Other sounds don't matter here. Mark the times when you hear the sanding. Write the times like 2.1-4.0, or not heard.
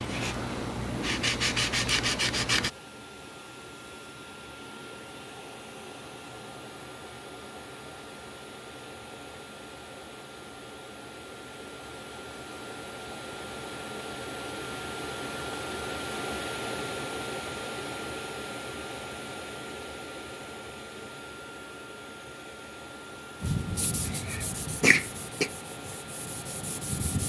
0.0-2.7, 23.4-27.2.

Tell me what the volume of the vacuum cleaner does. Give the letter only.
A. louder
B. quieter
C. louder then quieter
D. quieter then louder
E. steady
C.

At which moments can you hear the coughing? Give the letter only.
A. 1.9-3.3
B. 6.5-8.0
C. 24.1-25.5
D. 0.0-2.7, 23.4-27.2
C.